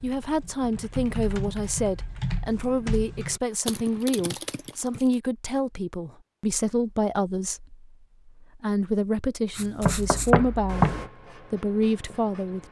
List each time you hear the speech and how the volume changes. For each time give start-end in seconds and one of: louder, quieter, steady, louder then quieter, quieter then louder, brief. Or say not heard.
0.0-12.6 steady.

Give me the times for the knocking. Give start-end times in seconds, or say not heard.
9.8-11.1.